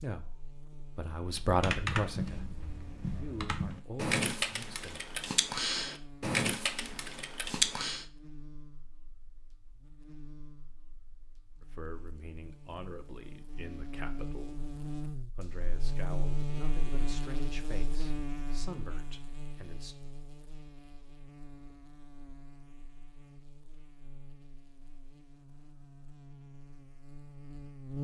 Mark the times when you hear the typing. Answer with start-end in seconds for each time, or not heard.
1.4-8.1.